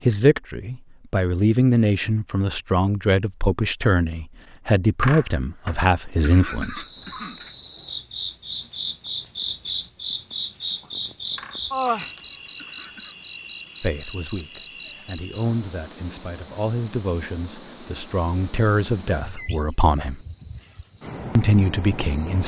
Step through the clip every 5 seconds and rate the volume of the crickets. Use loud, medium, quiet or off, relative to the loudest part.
off, loud, loud, loud, loud.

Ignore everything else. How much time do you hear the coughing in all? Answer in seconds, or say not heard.
4 s.